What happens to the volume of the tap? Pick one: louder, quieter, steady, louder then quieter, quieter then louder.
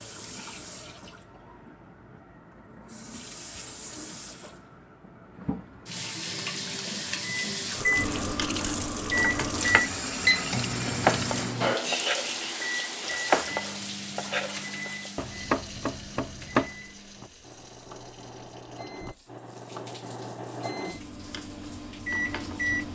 louder then quieter.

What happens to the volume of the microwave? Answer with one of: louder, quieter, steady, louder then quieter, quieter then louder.
quieter then louder.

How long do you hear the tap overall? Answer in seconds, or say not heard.
23 s.